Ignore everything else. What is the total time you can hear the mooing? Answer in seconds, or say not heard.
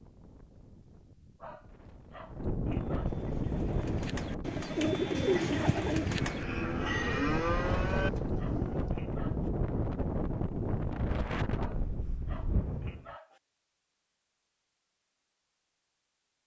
2 s.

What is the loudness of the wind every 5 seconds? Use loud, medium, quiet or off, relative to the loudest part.
loud, loud, loud, off.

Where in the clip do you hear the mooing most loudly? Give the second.
7 s.